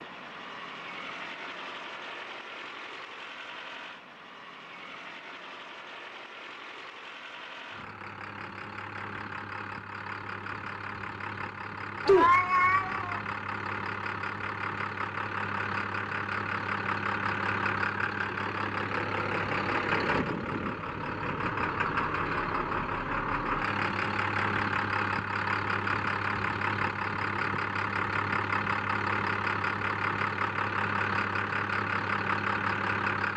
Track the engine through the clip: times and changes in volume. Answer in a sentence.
The engine can be heard from 0.0 to 33.3 s, getting louder.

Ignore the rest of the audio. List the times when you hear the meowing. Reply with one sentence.
You can hear the meowing from 12.1 to 13.2 s.